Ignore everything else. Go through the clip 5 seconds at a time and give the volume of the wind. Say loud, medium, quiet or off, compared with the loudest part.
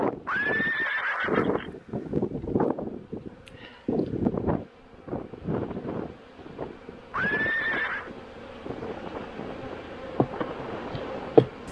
loud, medium, medium.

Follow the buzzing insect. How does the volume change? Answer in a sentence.
The loudness of the buzzing insect goes up.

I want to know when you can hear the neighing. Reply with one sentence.
You can hear the neighing from 0.2 to 1.7 s and from 7.1 to 8.1 s.